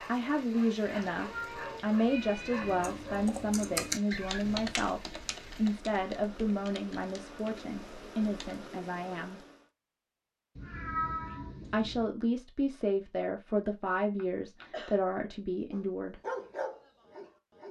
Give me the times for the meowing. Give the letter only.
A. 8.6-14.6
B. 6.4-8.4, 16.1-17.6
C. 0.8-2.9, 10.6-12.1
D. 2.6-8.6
C.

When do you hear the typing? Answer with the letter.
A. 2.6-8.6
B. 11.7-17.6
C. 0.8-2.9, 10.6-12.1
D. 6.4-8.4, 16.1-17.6
A.